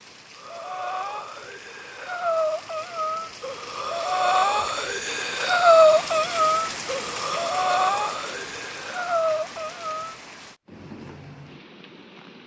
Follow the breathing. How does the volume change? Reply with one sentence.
The volume of the breathing goes up, then down.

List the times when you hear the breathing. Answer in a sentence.
The breathing can be heard from 0.3 to 10.2 s.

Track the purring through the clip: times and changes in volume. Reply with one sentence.
You can't hear the purring here.